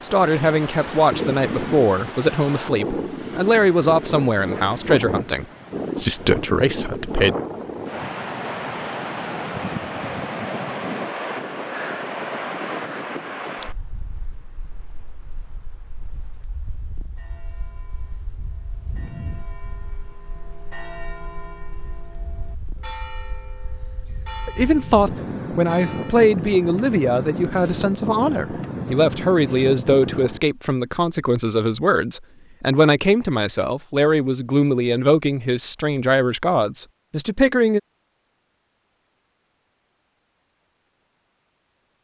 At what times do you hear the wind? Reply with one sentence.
You can hear the wind from 0.0 to 30.4 s.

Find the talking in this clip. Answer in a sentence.
The talking can be heard from 0.0 to 7.3 s and from 24.4 to 37.8 s.